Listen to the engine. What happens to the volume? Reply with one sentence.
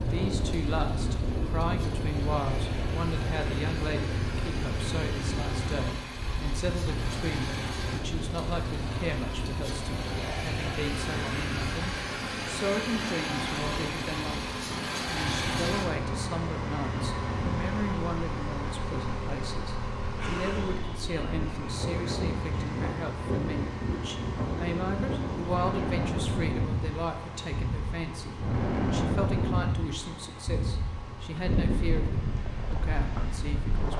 The volume of the engine goes up, then down.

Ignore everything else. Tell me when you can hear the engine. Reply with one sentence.
You can hear the engine from 0.0 to 33.9 s.